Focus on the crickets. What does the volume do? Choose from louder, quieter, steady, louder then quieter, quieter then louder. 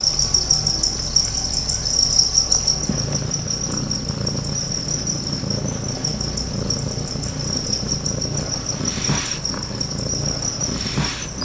quieter.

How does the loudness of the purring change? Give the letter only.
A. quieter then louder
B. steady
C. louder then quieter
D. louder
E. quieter
D.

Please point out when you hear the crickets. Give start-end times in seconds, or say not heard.
0.0-11.3.